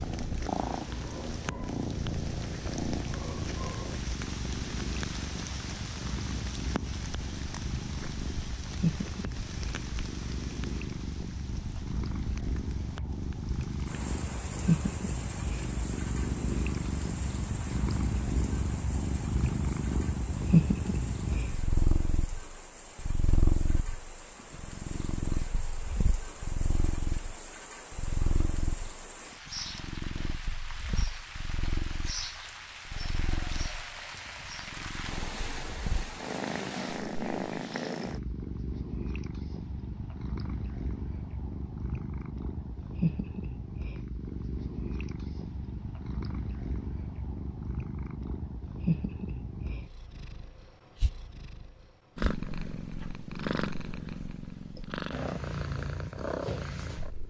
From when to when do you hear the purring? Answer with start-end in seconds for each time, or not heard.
0.0-57.2.